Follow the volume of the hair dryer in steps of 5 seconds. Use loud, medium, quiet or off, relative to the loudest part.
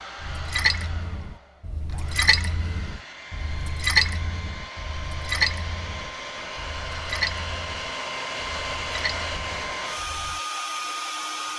medium, loud, loud.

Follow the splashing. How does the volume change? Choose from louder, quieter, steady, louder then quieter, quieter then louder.
quieter.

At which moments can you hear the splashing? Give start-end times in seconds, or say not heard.
0.2-10.4.